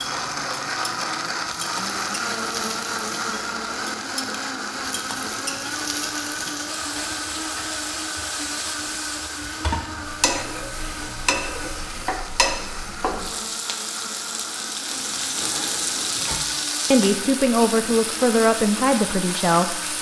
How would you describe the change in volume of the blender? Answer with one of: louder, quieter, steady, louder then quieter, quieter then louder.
quieter.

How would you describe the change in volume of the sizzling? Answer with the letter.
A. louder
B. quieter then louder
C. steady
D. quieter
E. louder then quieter
A.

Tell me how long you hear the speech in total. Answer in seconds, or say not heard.
3 s.